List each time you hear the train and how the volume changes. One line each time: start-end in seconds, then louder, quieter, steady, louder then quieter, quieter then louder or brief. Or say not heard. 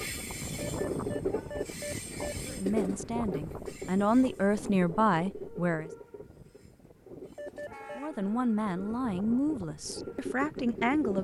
0.0-11.2 quieter then louder.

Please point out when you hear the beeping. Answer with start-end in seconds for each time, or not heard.
0.6-2.4, 7.3-8.0.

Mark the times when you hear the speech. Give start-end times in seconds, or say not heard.
2.5-5.9, 8.0-11.2.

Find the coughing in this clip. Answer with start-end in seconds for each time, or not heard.
not heard.